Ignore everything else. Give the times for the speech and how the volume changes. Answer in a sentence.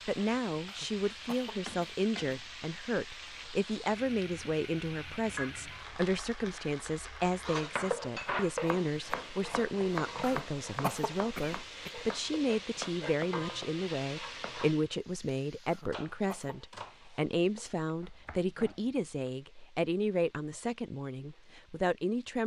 You can hear the speech from 0.1 to 22.4 s, at a steady volume.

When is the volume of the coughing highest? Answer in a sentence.
The loudest moment of the coughing is at 11 seconds.